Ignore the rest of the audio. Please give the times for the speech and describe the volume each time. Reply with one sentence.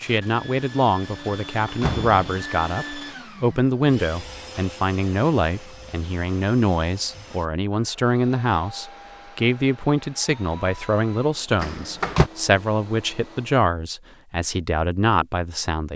You can hear the speech from 0.0 to 15.9 s, at a steady volume.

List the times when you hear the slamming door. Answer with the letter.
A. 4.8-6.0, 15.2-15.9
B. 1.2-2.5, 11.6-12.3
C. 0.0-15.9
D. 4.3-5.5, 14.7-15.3
B.